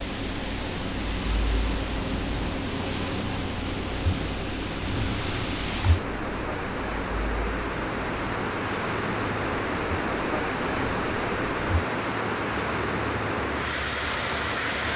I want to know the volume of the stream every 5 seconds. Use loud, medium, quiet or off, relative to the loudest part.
medium, loud, loud.